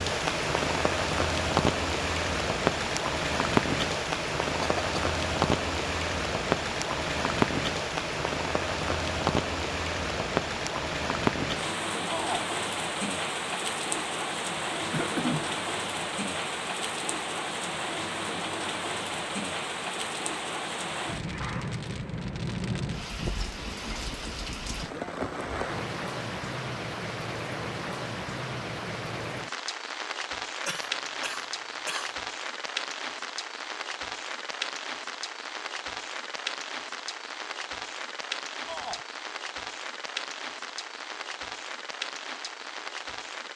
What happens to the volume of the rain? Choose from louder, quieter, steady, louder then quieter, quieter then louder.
quieter.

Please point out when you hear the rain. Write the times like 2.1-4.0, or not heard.
0.0-43.5.